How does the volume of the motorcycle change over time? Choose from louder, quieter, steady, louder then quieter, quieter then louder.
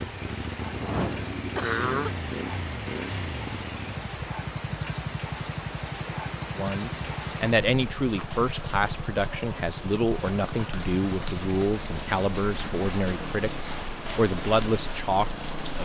quieter.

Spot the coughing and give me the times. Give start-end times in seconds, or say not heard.
0.9-2.1.